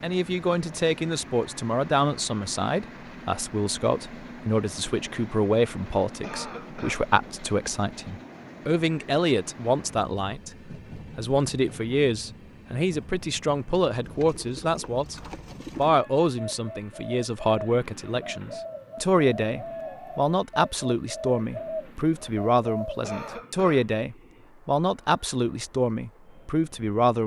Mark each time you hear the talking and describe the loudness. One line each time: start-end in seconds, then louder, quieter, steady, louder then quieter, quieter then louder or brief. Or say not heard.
0.0-27.2 steady.